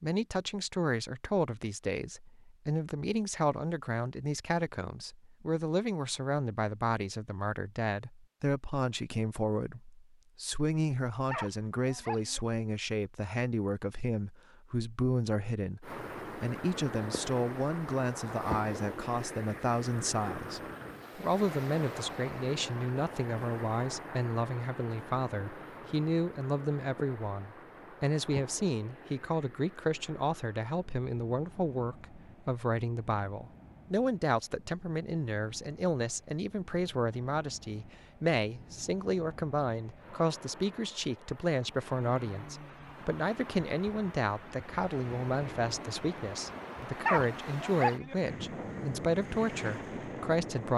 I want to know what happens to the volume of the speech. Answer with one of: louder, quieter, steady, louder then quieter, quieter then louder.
steady.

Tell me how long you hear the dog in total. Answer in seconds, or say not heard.
2 s.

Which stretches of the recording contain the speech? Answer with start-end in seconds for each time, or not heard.
0.0-50.7.